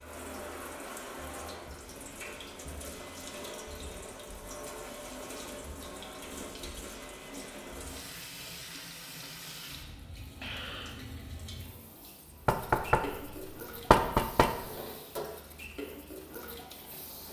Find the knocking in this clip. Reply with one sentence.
You can hear the knocking from 12.4 to 14.7 s.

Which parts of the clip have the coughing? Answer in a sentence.
The coughing can be heard from 10.4 to 11.0 s.